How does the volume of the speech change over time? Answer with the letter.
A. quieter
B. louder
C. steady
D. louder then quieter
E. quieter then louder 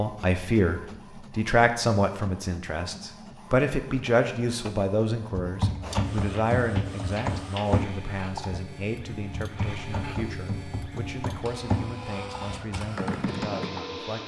A.